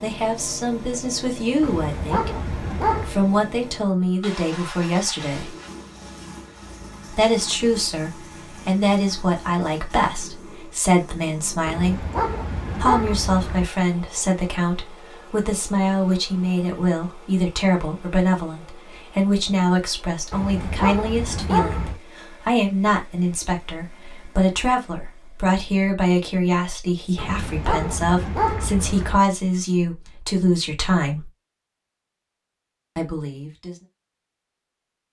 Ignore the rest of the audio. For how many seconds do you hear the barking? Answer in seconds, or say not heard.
7 s.